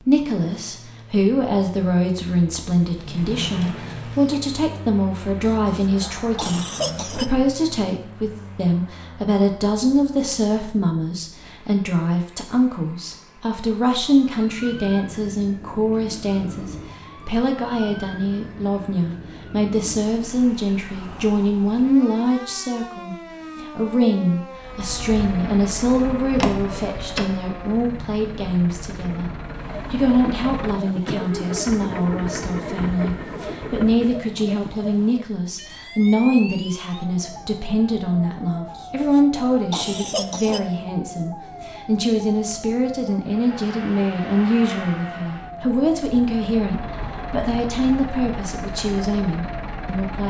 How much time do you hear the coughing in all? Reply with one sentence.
You can hear the coughing for 4 seconds altogether.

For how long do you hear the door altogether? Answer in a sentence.
You can hear the door for 3 seconds altogether.